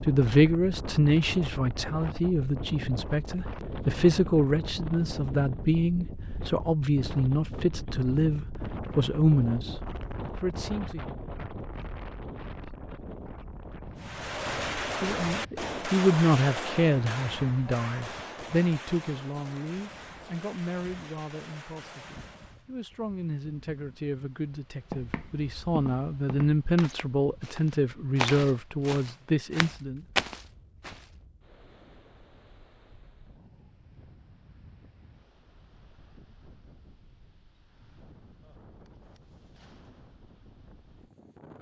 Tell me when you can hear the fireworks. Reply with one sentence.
The fireworks can be heard from 13.9 to 22.6 s.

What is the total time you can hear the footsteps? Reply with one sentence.
You can hear the footsteps for 6 seconds altogether.